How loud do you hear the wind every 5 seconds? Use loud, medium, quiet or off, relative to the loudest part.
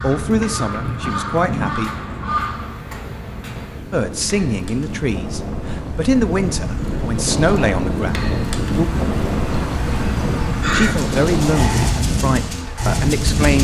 medium, loud, loud.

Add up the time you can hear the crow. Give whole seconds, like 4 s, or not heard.
7 s.